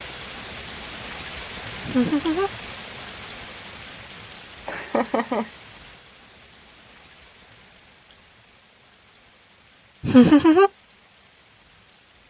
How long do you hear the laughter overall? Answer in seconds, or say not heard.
2 s.